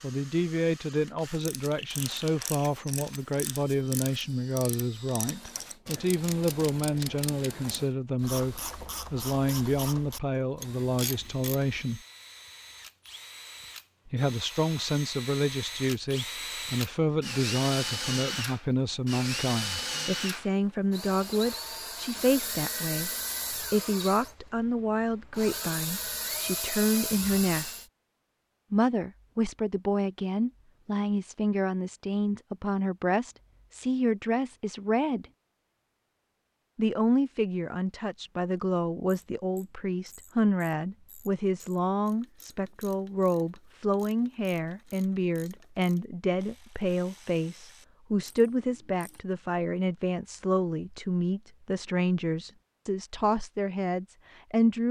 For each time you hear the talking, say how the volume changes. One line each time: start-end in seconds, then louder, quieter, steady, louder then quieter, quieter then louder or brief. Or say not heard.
0.0-12.0 steady
14.1-27.8 steady
28.7-35.2 steady
36.8-54.8 steady.